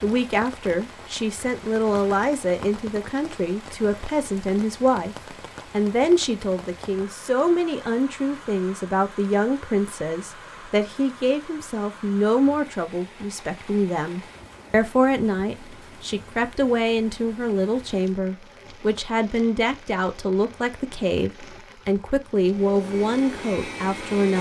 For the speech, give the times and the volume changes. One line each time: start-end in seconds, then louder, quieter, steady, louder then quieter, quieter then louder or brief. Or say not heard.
0.0-24.3 steady.